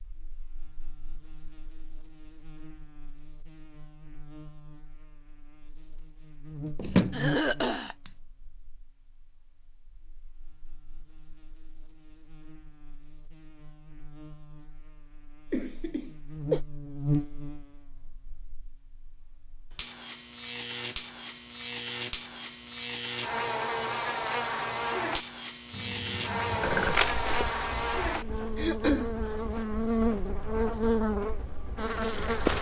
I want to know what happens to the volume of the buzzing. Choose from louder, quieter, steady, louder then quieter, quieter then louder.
louder.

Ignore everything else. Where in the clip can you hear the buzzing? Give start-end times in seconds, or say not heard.
0.0-32.5.